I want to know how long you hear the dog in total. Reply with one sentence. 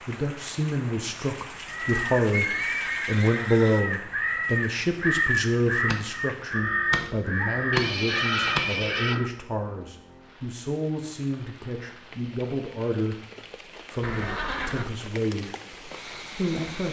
You can't hear the dog here.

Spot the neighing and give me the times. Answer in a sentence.
You can hear the neighing from 2.3 to 3.8 s, from 7.7 to 9.2 s and from 14.0 to 14.9 s.